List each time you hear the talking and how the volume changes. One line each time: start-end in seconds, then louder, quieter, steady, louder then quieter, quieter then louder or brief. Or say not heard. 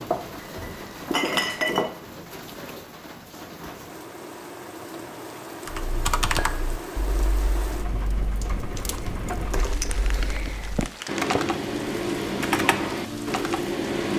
not heard.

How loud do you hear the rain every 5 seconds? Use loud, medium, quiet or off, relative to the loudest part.
medium, loud, loud.